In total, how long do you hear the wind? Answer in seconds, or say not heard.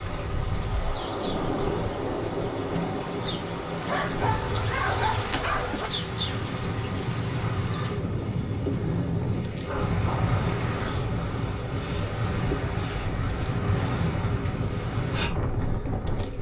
16 s.